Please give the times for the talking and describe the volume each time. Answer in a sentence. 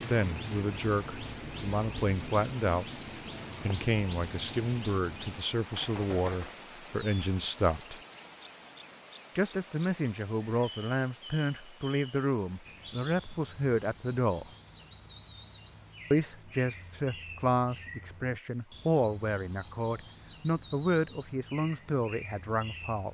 You can hear the talking briefly from 0.1 to 2.9 s; from 3.6 to 8.0 s, at a steady volume; from 9.3 to 14.4 s, at a steady volume; and from 16.1 to 23.0 s, at a steady volume.